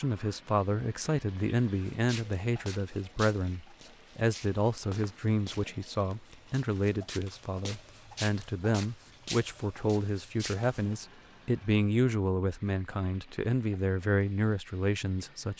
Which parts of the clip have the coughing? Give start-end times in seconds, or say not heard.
not heard.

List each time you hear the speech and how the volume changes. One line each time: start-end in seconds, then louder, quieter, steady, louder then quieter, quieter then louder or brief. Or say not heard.
0.0-15.5 steady.